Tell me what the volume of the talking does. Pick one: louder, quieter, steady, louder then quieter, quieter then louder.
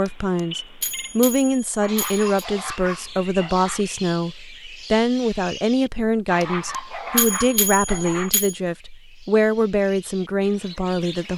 steady.